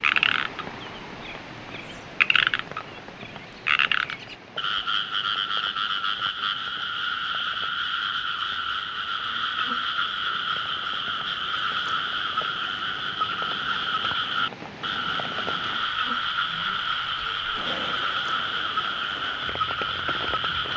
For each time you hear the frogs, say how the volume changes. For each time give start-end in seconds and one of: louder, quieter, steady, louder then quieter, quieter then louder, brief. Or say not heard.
0.0-20.7 steady.